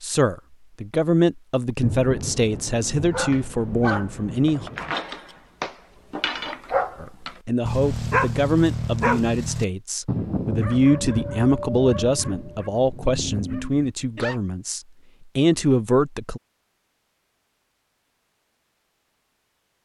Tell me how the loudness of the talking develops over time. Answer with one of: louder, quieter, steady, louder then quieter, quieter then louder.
steady.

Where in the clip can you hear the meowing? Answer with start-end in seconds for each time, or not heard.
not heard.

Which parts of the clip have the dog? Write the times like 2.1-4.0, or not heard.
3.1-14.4.